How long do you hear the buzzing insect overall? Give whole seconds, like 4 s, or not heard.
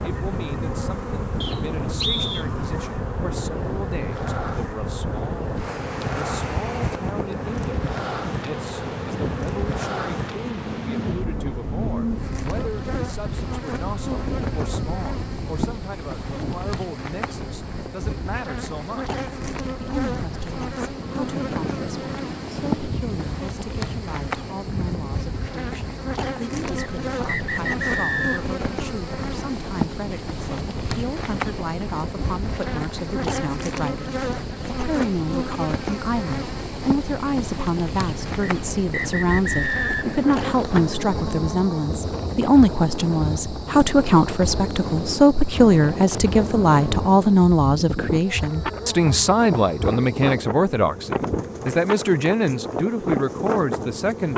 54 s.